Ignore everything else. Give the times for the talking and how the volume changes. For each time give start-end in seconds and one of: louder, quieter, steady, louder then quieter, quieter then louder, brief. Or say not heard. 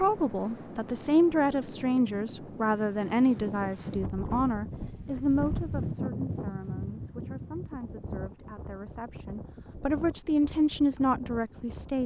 0.0-12.0 quieter then louder.